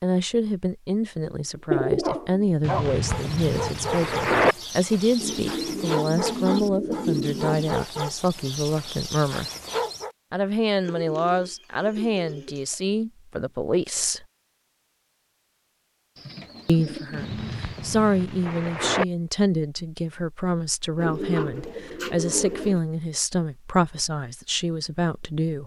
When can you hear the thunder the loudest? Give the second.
4 s.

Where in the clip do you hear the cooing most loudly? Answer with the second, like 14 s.
2 s.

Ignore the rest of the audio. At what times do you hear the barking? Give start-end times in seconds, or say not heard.
2.0-10.2.